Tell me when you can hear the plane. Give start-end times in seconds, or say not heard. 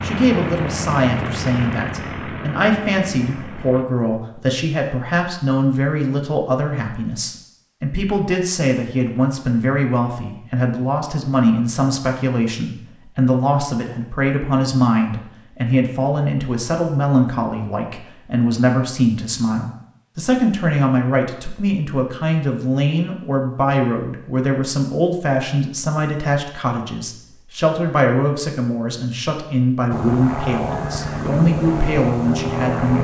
0.0-3.9, 29.9-32.9.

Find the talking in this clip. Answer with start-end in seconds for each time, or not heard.
0.0-32.9.